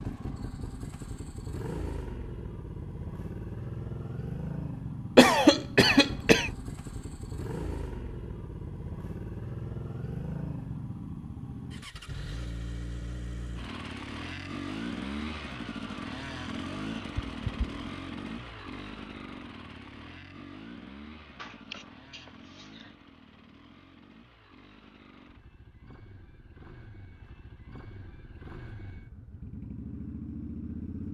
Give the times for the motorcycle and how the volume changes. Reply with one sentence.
You can hear the motorcycle from 0.0 to 31.0 s, getting quieter.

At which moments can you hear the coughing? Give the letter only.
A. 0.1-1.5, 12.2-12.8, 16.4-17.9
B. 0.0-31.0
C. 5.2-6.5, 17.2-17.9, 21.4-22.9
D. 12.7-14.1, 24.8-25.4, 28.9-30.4
C.